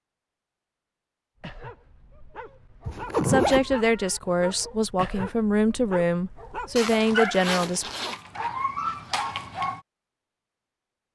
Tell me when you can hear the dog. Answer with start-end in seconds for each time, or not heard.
1.4-9.8.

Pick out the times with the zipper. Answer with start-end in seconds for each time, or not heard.
2.9-3.8, 6.8-8.2.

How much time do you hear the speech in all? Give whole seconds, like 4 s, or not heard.
5 s.